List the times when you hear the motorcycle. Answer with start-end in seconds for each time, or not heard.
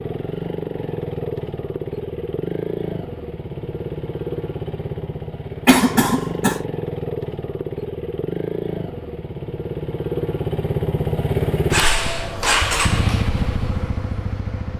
0.0-14.7.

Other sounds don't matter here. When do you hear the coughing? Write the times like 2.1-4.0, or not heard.
5.7-6.6.